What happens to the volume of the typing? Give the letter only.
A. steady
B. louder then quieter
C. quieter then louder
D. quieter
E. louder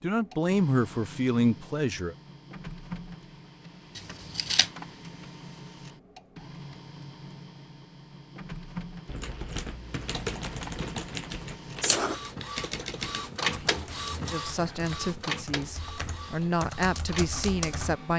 C.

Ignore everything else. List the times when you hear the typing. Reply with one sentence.
You can hear the typing from 9.1 to 17.9 s.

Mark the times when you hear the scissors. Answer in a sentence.
The scissors can be heard from 4.0 to 4.7 s and from 11.8 to 12.4 s.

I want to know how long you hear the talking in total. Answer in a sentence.
You can hear the talking for 6 seconds altogether.